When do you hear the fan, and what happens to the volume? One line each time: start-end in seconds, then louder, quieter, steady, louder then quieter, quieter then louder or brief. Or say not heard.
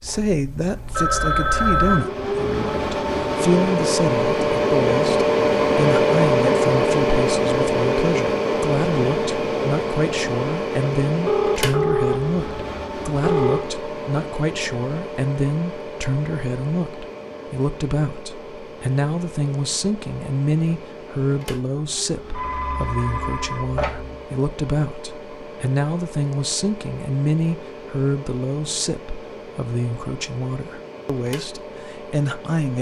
0.0-32.7 quieter.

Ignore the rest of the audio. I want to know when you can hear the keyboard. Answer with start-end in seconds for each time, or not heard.
not heard.